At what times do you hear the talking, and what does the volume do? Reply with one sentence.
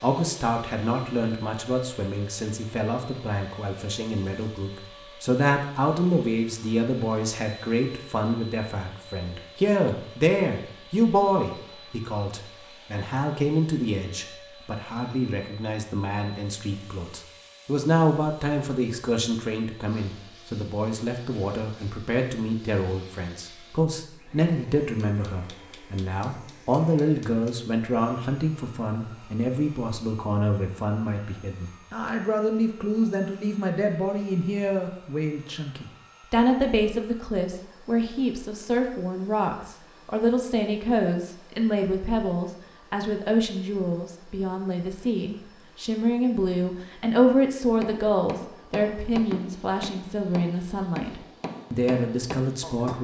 You can hear the talking from 0.0 to 52.9 s, at a steady volume.